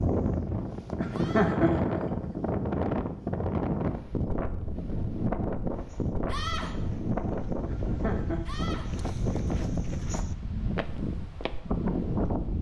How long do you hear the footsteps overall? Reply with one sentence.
You can hear the footsteps for 6 seconds altogether.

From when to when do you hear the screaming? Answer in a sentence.
The screaming can be heard from 1.1 to 1.6 s, from 6.2 to 6.8 s and from 8.4 to 8.9 s.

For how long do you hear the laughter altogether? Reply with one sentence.
The laughter can be heard for 2 seconds in total.